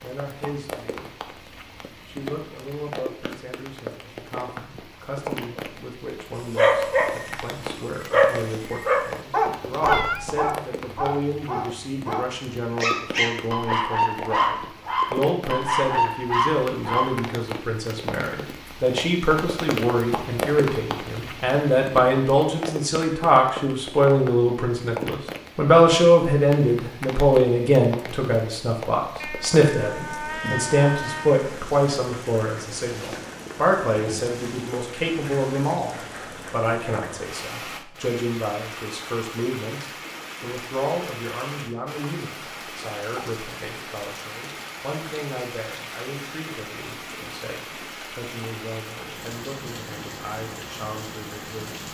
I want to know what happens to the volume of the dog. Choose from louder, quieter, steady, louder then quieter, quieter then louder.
quieter then louder.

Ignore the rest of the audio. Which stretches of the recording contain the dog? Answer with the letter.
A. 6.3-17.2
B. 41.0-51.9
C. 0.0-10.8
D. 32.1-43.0
A.